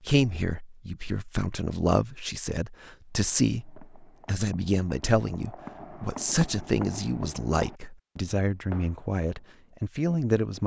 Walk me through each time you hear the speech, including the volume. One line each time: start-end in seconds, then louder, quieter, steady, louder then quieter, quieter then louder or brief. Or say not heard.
0.0-10.6 steady.